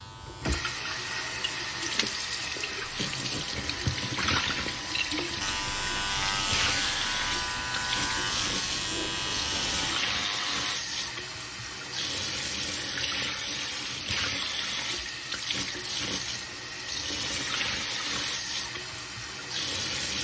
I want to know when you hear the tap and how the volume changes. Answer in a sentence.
You can hear the tap from 0.0 to 20.1 s, at a steady volume.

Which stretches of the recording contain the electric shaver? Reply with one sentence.
The electric shaver can be heard from 0.0 to 10.8 s.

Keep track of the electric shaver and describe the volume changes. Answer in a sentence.
The loudness of the electric shaver goes up.